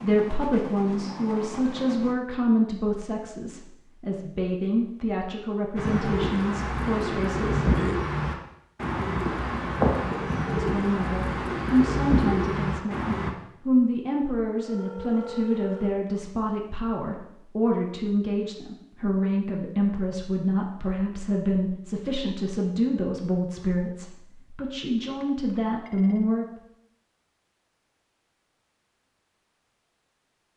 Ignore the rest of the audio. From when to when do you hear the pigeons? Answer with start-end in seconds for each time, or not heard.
5.8-13.3.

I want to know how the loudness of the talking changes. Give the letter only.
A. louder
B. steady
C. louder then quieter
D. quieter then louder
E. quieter
B.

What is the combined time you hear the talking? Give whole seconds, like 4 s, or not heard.
24 s.